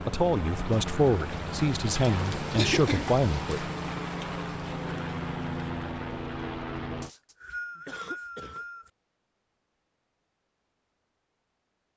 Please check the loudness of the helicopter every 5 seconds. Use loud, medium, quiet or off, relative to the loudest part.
loud, loud, off.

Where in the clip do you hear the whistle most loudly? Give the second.
8 s.